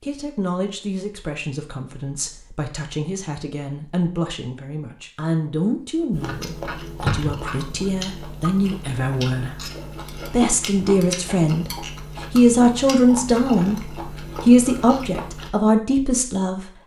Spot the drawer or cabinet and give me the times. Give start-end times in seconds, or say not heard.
7.0-7.5.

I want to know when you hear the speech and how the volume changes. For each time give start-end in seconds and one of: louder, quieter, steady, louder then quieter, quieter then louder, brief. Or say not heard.
0.0-16.7 louder.